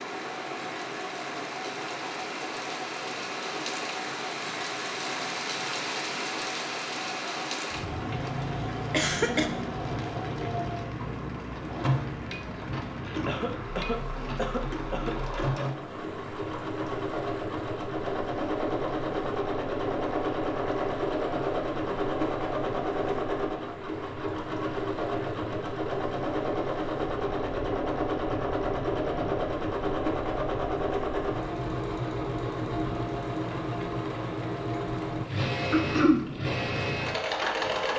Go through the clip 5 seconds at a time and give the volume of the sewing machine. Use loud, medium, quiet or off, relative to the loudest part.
medium, medium, medium, loud, loud, loud, loud, loud.